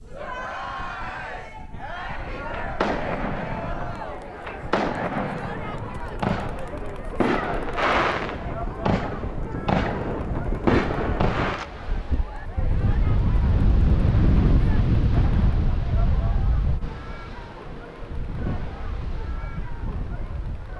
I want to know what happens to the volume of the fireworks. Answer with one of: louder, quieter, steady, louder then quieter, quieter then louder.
louder.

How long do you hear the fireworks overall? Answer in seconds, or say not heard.
9 s.